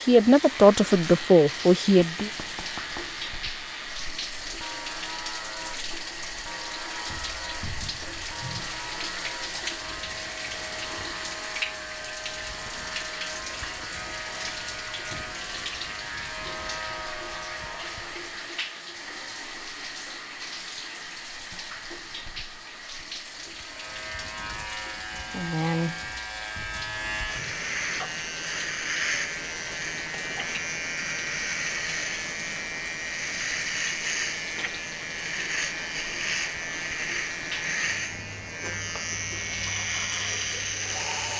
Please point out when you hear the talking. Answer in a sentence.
The talking can be heard from 0.0 to 2.3 s.